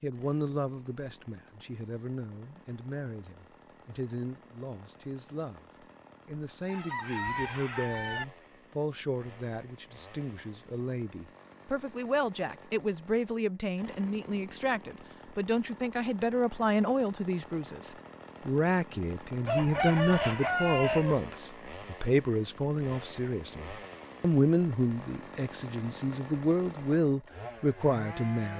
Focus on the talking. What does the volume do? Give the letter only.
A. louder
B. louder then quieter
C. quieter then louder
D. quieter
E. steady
A.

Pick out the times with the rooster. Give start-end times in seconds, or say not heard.
6.7-8.2, 19.4-21.2.